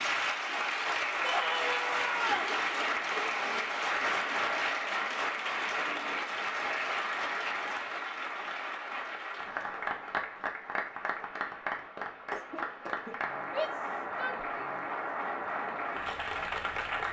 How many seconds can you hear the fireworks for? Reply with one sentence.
The fireworks can't be heard in this clip.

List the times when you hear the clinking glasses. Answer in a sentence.
You can't hear the clinking glasses here.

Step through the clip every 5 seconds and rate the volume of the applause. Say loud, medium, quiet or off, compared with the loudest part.
loud, loud, medium, loud.